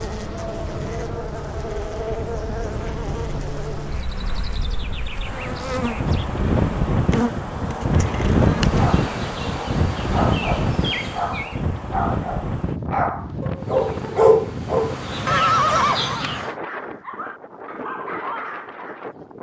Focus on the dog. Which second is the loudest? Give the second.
14 s.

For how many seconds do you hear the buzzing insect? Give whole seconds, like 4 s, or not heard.
15 s.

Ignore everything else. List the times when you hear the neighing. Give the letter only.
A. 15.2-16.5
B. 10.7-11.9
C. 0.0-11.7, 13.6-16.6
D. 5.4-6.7
A.